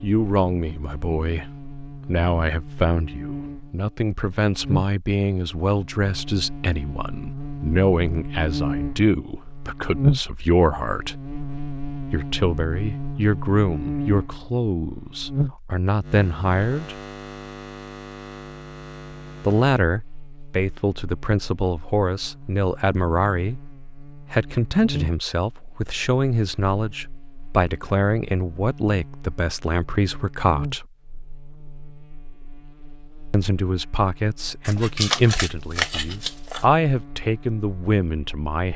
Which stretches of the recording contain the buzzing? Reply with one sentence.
You can hear the buzzing from 0.0 to 38.7 s.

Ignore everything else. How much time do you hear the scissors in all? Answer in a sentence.
The scissors can be heard for 2 seconds in total.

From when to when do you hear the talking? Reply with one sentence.
You can hear the talking from 0.0 to 11.2 s, from 12.1 to 16.9 s, from 19.4 to 23.6 s, from 24.3 to 30.9 s and from 33.3 to 38.7 s.